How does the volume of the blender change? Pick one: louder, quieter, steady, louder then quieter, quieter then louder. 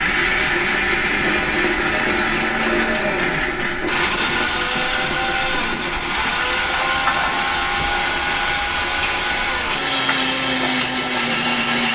steady.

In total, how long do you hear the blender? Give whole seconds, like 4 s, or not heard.
12 s.